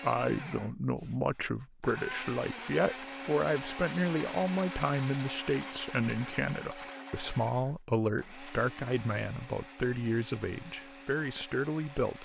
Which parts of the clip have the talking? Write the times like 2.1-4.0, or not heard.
0.0-12.2.